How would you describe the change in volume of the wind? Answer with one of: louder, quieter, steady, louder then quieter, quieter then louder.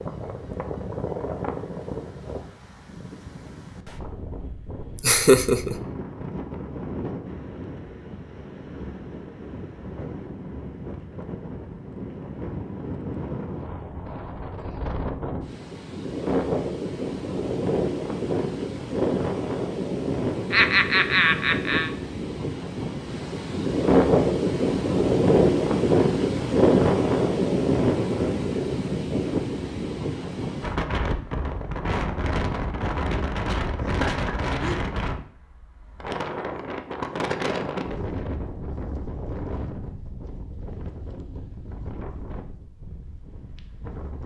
louder then quieter.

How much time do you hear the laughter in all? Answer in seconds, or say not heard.
3 s.